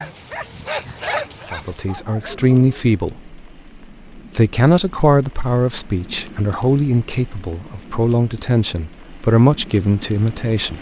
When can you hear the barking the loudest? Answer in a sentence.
The volume of the barking peaks at 1 second.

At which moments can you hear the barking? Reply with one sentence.
You can hear the barking from 0.0 to 2.9 s.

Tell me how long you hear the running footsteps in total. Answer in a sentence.
The running footsteps can't be heard in this clip.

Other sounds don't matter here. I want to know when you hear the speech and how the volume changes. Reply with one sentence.
The speech can be heard briefly from 1.5 to 3.4 s; and from 4.2 to 10.7 s, getting quieter then louder.